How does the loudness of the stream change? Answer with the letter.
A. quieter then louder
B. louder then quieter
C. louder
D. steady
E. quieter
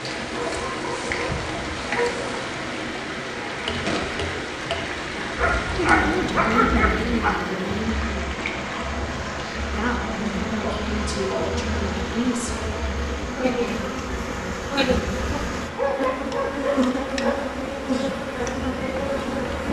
E.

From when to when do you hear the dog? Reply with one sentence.
The dog can be heard from 0.3 to 2.2 s, from 5.3 to 7.3 s, from 10.6 to 11.6 s and from 15.8 to 17.4 s.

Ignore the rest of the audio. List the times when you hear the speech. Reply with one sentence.
You can hear the speech from 5.8 to 8.4 s and from 9.8 to 12.6 s.